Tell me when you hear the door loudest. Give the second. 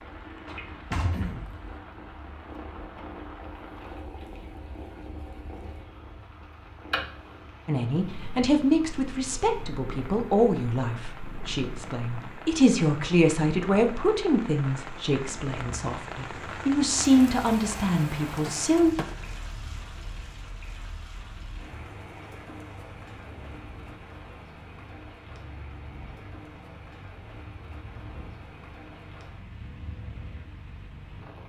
1 s.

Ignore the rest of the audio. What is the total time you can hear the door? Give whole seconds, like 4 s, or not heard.
2 s.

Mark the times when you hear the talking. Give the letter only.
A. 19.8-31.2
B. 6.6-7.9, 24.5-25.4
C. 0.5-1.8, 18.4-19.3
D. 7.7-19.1
D.